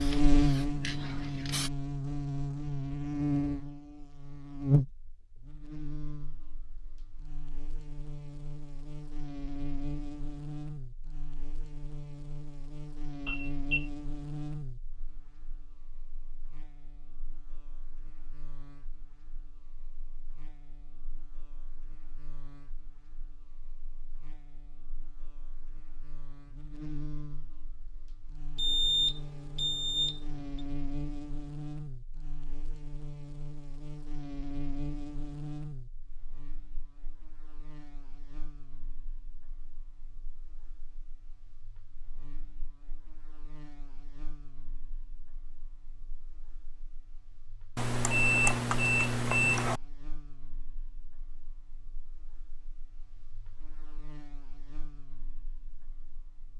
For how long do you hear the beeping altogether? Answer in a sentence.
You can hear the beeping for 5 seconds altogether.